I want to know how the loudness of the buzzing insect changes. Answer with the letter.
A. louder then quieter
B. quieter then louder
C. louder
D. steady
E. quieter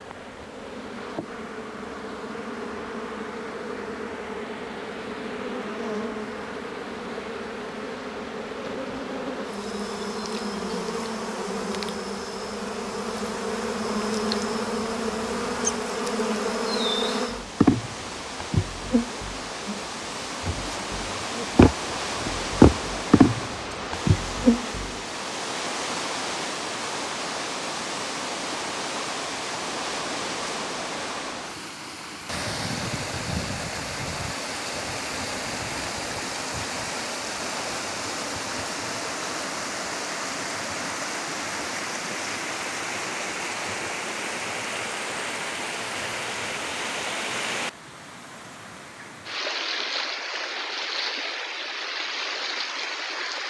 C.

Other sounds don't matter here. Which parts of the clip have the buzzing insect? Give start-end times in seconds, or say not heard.
0.0-25.1.